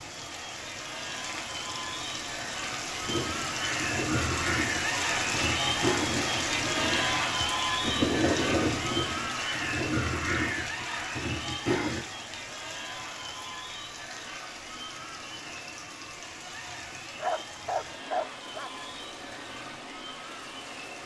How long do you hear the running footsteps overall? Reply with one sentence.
You can't hear the running footsteps here.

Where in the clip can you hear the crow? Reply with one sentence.
The crow can be heard from 3.0 to 12.0 s.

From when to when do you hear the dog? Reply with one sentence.
You can hear the dog from 17.1 to 18.7 s.